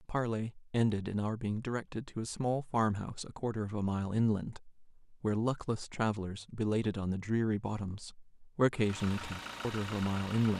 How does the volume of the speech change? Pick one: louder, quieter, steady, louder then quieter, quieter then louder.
steady.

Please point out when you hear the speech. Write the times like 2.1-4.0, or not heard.
0.1-10.5.